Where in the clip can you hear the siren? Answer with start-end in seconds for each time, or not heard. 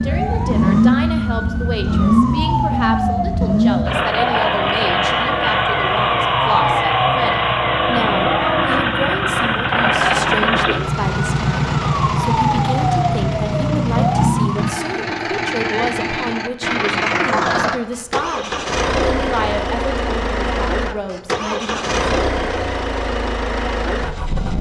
0.0-14.8.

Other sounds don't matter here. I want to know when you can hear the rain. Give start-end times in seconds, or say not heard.
not heard.